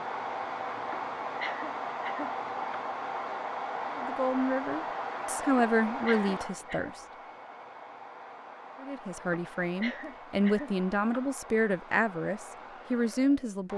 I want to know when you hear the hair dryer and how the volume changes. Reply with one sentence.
You can hear the hair dryer from 0.0 to 13.7 s, getting quieter.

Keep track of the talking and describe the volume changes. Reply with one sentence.
The volume of the talking stays about the same.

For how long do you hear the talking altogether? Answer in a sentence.
You can hear the talking for 8 seconds altogether.